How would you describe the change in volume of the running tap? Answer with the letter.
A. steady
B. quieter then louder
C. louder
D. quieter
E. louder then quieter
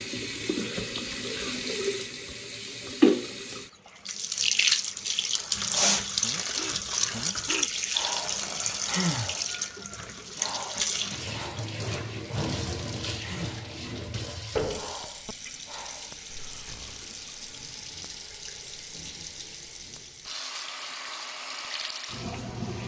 D.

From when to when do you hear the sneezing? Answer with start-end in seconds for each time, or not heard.
not heard.